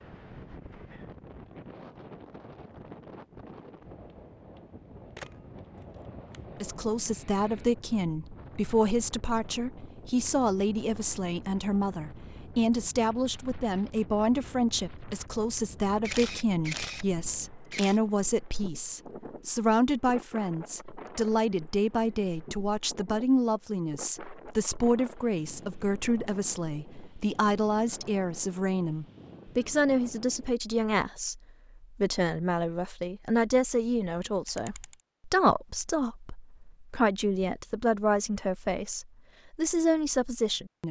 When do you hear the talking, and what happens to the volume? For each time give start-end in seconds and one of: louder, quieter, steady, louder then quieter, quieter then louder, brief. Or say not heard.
6.6-40.8 steady.